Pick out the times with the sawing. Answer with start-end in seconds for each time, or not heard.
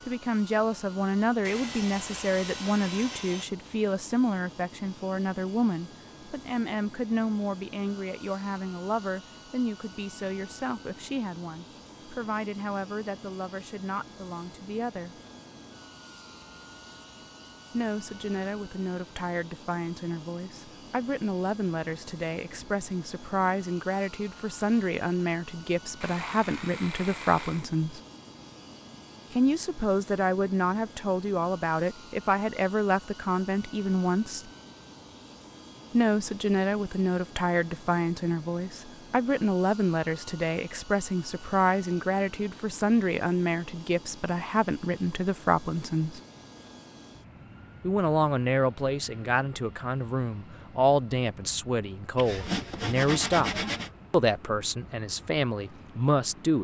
1.4-3.5, 26.0-27.6, 52.1-53.9.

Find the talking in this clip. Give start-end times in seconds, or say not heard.
0.1-15.2, 17.7-28.0, 29.3-34.5, 35.9-46.2, 47.8-56.5.